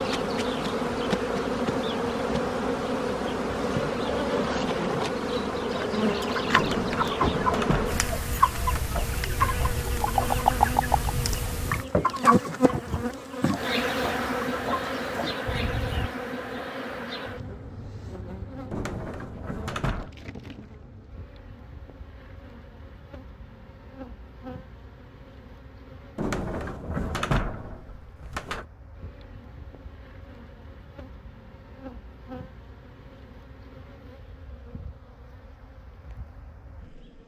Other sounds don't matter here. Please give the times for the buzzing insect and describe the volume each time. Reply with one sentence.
The buzzing insect can be heard from 0.0 to 37.2 s, getting quieter.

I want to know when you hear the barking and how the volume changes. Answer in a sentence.
The barking can't be heard in this clip.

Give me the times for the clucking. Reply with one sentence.
You can hear the clucking from 5.7 to 16.1 s.